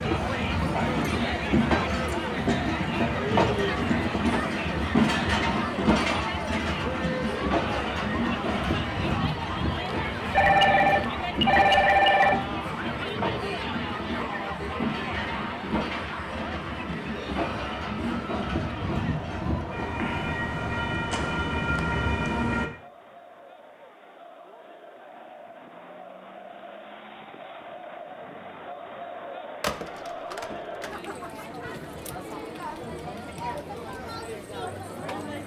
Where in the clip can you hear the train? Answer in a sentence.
You can hear the train from 0.0 to 22.7 s.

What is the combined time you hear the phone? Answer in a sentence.
You can hear the phone for 3 seconds altogether.